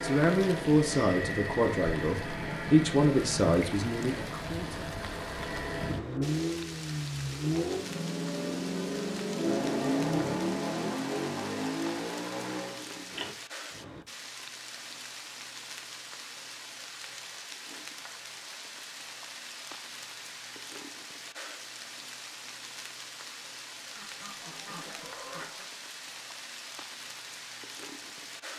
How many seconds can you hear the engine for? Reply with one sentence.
You can hear the engine for 13 seconds altogether.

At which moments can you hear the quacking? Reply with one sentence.
The quacking can be heard from 23.9 to 25.6 s.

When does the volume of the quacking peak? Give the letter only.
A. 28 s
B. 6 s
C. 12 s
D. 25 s
D.